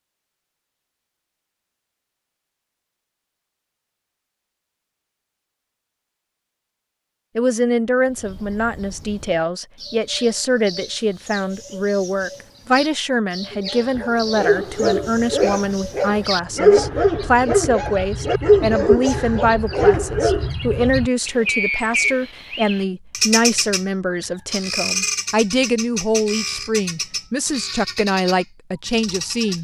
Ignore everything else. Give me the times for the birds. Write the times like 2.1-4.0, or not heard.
8.1-29.5.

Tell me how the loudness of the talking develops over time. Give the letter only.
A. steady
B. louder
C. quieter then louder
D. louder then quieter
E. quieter
A.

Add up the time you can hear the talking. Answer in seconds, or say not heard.
22 s.